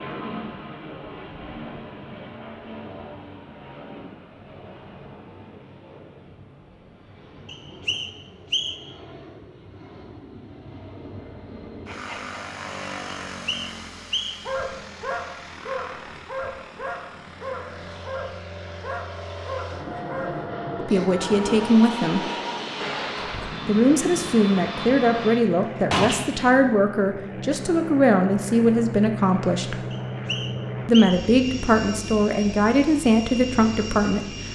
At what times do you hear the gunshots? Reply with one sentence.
You can hear the gunshots from 25.4 to 26.6 s.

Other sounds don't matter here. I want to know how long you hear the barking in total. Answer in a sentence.
You can hear the barking for 9 seconds altogether.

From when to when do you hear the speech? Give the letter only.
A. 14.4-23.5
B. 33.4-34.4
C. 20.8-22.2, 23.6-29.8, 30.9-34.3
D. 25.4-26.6
C.